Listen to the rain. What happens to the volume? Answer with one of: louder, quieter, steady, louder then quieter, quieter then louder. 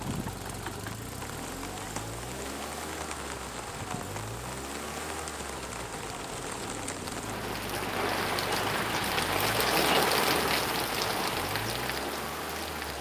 louder.